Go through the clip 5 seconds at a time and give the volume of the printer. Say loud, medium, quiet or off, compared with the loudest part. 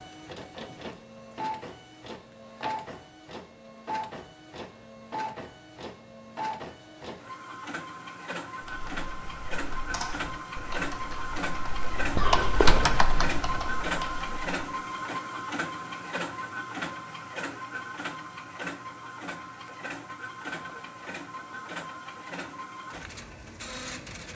medium, medium, loud, loud, medium.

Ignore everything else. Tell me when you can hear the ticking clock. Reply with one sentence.
The ticking clock can't be heard in this clip.